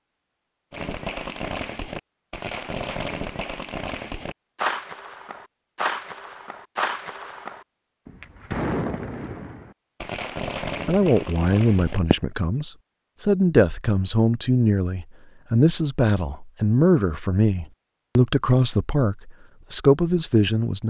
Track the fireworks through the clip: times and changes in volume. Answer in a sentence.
The fireworks can be heard from 0.7 to 12.2 s, at a steady volume.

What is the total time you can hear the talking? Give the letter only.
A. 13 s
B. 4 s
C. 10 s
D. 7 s
C.